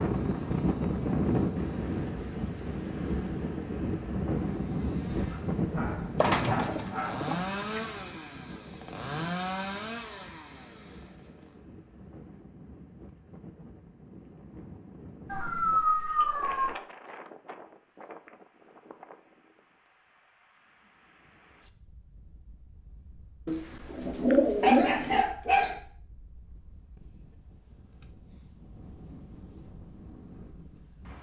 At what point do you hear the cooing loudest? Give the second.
24 s.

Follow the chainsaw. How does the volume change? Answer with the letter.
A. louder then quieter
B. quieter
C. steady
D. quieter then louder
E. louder
E.